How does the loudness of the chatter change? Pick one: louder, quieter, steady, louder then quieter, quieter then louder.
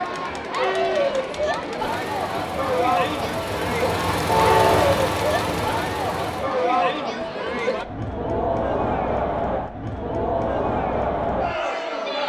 steady.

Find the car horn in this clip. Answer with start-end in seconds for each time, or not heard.
4.2-4.9.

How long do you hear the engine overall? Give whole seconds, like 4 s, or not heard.
5 s.